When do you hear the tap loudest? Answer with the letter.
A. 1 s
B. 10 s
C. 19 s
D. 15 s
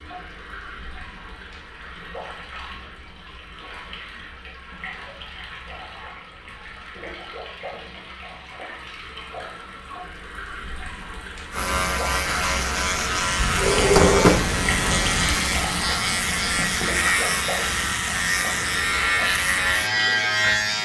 D.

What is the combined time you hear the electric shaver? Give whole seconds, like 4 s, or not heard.
9 s.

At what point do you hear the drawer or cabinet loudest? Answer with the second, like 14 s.
14 s.